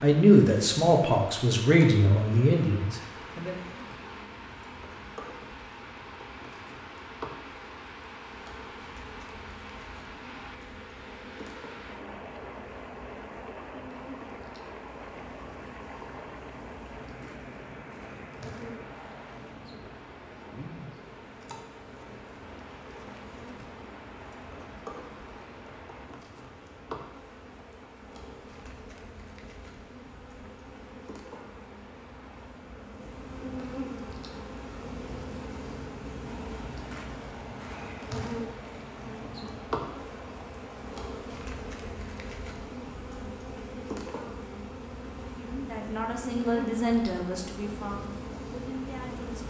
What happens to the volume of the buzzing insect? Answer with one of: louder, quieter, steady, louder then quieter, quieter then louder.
louder.